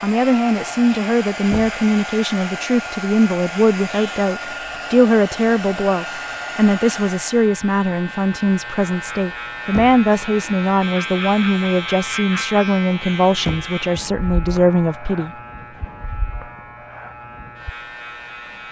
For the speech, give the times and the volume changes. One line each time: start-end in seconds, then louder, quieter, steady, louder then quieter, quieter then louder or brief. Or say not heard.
0.0-15.3 steady.